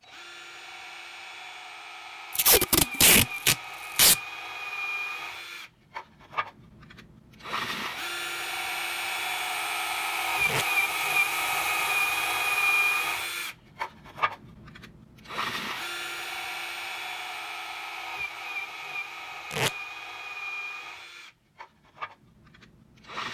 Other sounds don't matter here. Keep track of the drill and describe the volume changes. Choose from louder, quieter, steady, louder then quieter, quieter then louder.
louder then quieter.